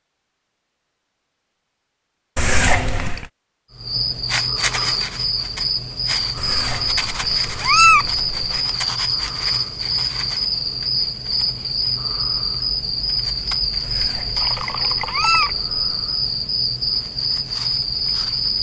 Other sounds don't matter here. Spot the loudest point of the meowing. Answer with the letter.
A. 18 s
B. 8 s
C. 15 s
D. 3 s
B.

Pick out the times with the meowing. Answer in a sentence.
You can hear the meowing from 2.4 to 3.2 s, from 6.3 to 8.6 s and from 13.8 to 15.8 s.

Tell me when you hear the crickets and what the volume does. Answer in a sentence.
The crickets can be heard from 3.7 to 18.5 s, at a steady volume.